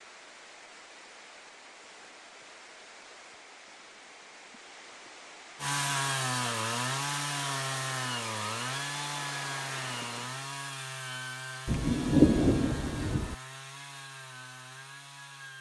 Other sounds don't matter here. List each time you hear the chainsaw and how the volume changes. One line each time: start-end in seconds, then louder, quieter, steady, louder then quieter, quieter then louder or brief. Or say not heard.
5.5-15.5 quieter.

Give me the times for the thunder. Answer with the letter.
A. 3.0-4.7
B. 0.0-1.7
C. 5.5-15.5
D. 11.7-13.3
D.